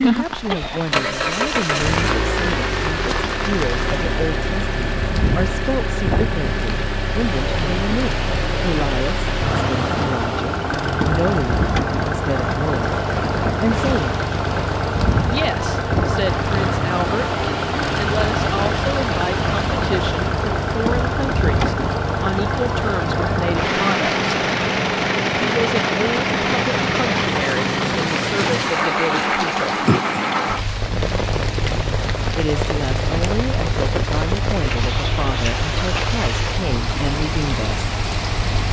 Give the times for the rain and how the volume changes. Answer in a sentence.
You can hear the rain from 0.0 to 38.6 s, at a steady volume.